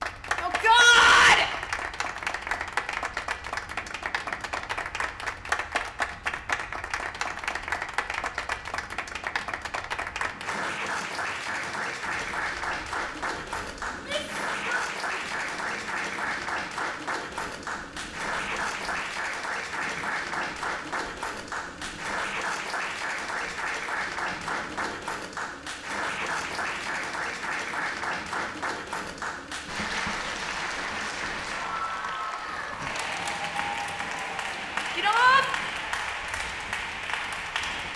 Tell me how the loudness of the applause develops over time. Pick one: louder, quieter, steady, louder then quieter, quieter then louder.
steady.